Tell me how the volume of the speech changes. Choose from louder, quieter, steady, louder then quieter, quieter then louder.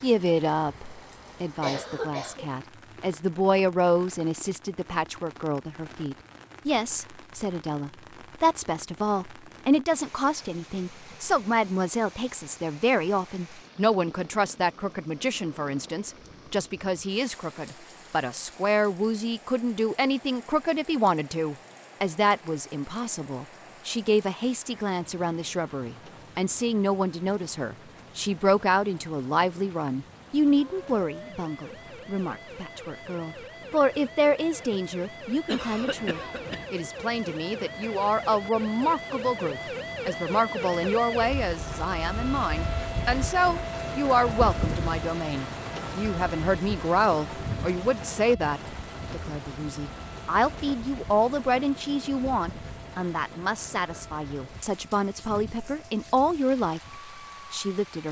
steady.